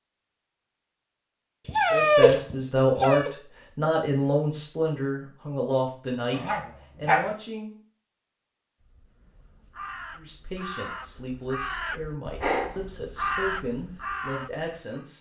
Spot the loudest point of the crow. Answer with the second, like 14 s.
13 s.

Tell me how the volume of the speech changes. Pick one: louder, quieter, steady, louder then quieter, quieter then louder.
quieter.